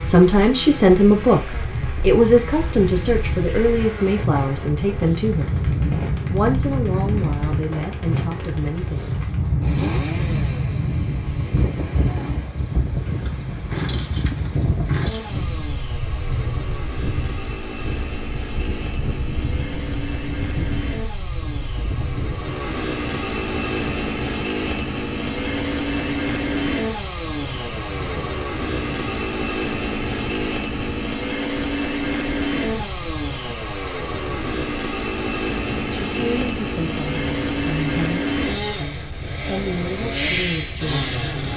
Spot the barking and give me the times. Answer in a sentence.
The barking can't be heard in this clip.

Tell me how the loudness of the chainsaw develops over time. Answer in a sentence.
The volume of the chainsaw goes up.